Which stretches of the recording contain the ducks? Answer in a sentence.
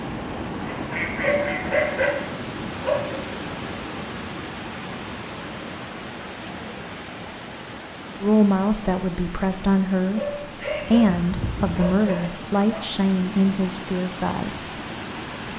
The ducks can be heard from 0.7 to 2.2 s and from 10.6 to 11.8 s.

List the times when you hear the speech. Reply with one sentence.
The speech can be heard from 8.2 to 14.7 s.